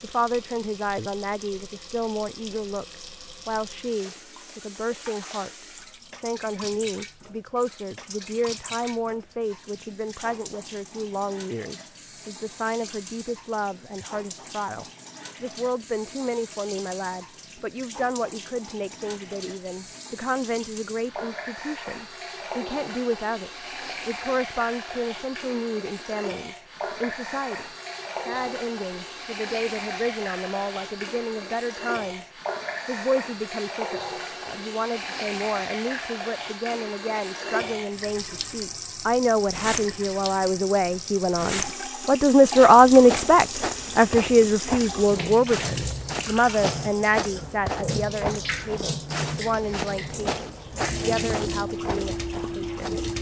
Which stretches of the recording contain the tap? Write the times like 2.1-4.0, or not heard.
0.0-53.1.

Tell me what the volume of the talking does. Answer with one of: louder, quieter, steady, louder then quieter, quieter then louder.
louder.